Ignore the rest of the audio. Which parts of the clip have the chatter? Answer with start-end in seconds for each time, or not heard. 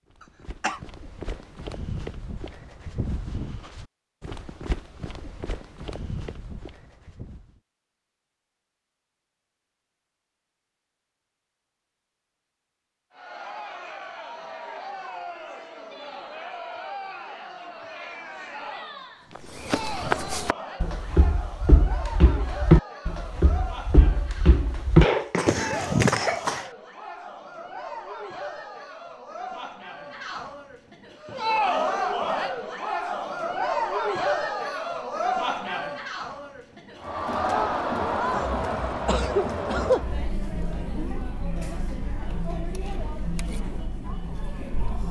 13.1-45.0.